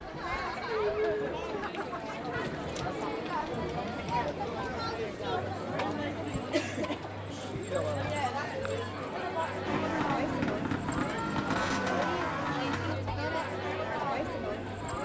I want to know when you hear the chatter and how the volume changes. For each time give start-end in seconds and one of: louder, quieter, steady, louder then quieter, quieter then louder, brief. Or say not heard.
0.0-14.9 steady.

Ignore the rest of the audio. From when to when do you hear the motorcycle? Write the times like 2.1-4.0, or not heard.
9.7-12.9.